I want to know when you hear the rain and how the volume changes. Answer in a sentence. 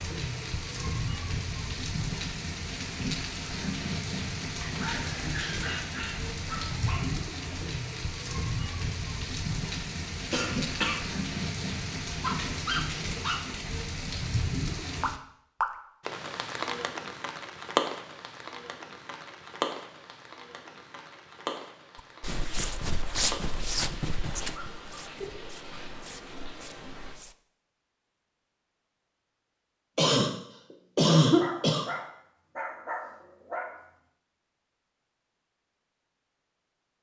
You can hear the rain from 0.0 to 27.2 s, getting quieter.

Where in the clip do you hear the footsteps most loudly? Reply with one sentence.
The volume of the footsteps peaks at 23 seconds.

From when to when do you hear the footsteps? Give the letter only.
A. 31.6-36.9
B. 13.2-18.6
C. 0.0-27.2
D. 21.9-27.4
D.